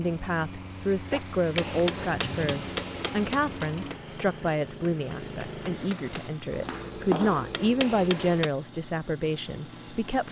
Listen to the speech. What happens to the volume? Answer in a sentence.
The volume of the speech stays about the same.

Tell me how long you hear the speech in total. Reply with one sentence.
You can hear the speech for 10 seconds altogether.